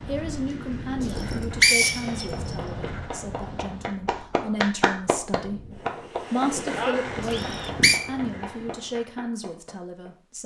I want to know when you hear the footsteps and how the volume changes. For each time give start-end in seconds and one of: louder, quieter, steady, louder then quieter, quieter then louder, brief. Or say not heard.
not heard.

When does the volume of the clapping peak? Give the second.
5 s.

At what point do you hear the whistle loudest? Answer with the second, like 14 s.
2 s.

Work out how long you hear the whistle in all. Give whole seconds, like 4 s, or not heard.
2 s.